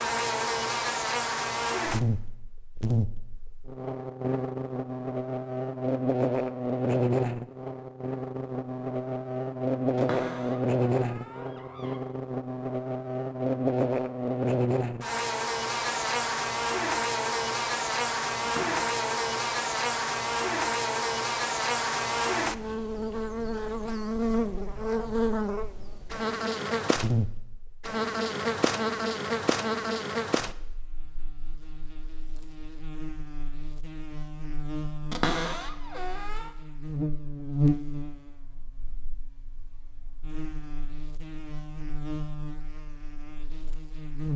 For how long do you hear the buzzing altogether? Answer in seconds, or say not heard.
44 s.